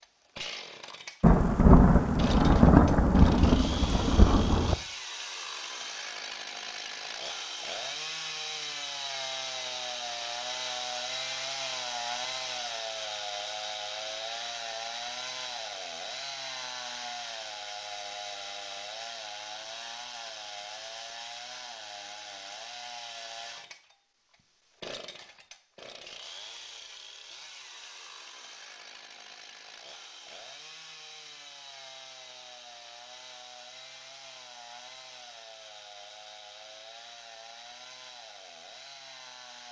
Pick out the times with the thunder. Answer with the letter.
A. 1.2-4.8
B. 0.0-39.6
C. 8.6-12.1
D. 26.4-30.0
A.